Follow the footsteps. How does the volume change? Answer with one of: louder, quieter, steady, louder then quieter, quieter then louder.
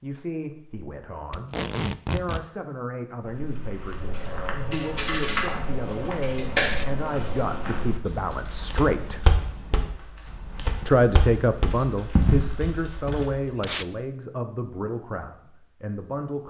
louder.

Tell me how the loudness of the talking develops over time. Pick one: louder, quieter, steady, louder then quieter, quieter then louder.
louder then quieter.